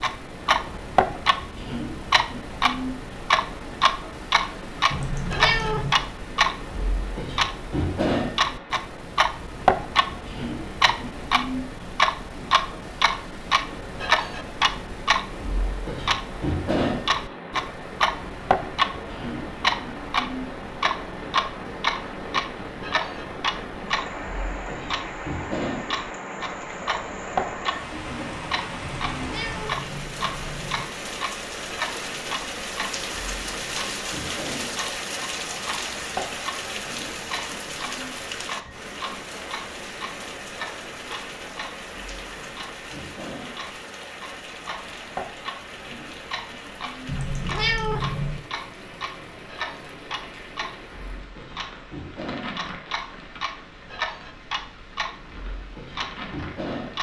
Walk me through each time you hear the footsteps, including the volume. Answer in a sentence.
You can't hear the footsteps here.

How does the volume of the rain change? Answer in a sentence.
The volume of the rain goes up, then down.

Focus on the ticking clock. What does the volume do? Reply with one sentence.
The volume of the ticking clock goes down.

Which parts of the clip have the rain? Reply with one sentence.
The rain can be heard from 0.0 to 56.9 s.